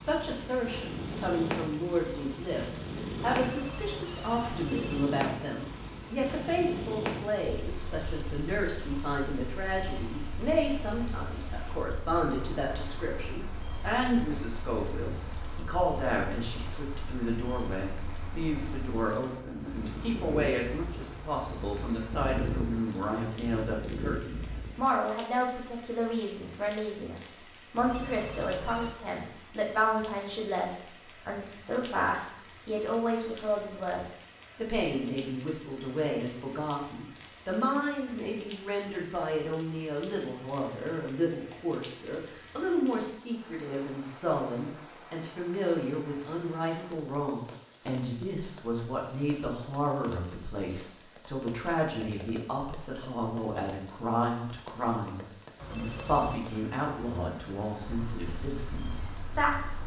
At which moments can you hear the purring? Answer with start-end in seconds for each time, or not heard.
0.0-24.9, 57.8-59.8.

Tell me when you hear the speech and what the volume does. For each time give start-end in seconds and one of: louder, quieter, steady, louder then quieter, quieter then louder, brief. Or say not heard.
0.0-59.8 steady.